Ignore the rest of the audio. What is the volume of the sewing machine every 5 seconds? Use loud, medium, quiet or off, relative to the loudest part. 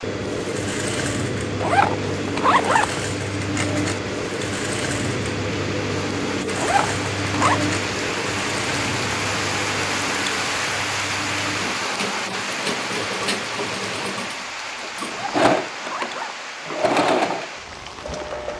loud, loud, medium, loud.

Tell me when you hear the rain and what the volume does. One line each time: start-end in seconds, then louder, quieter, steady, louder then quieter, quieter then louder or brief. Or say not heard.
0.0-18.5 louder then quieter.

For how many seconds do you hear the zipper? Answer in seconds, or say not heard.
4 s.